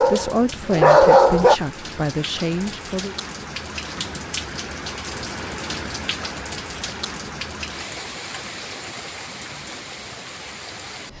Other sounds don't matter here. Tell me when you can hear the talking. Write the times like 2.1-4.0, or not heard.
0.0-3.1.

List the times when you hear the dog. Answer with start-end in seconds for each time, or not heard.
0.0-1.6.